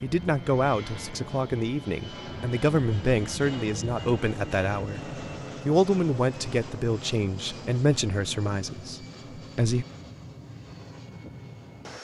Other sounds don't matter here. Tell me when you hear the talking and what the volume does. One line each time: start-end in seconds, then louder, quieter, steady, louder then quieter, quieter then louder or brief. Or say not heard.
0.0-9.8 steady.